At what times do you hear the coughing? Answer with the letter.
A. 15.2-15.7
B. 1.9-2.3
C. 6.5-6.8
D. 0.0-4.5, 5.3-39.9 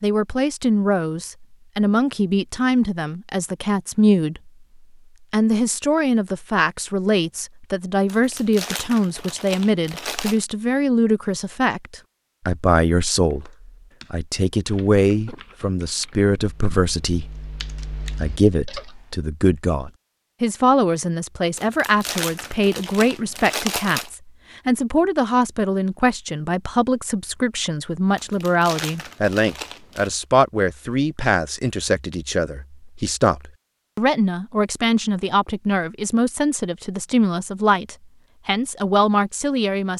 A.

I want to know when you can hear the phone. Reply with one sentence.
You can't hear the phone here.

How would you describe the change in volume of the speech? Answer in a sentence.
The loudness of the speech stays about the same.